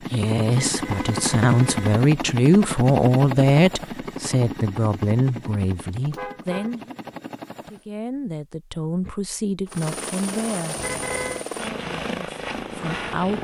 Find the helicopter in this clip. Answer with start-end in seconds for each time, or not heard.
0.0-7.8, 9.7-13.3.